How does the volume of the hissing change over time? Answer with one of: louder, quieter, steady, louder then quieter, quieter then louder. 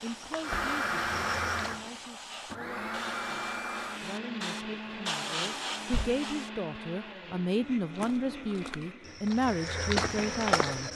louder.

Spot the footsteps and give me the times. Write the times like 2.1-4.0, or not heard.
0.1-1.9, 7.5-10.9.